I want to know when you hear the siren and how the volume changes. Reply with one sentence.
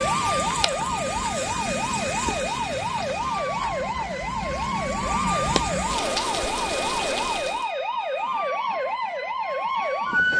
The siren can be heard from 0.0 to 10.3 s, at a steady volume.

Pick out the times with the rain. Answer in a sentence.
The rain can be heard from 0.0 to 7.7 s.